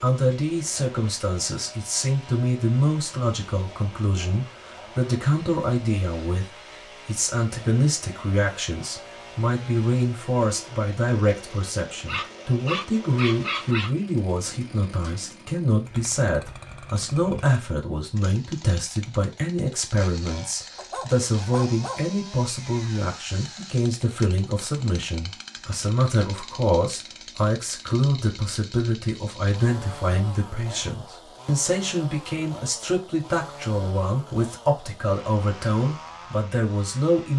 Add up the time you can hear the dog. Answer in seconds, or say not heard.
3 s.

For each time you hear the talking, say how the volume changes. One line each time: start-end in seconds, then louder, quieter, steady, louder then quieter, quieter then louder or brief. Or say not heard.
0.0-37.3 steady.